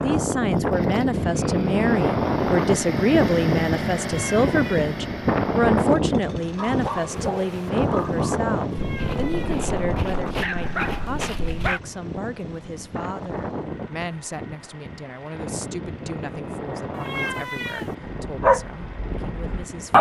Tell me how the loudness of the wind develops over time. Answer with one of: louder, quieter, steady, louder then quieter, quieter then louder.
quieter.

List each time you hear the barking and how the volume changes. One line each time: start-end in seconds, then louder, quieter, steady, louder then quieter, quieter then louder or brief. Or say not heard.
6.5-11.8 quieter then louder
18.1-19.9 brief.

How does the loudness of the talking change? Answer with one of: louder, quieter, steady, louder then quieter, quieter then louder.
quieter.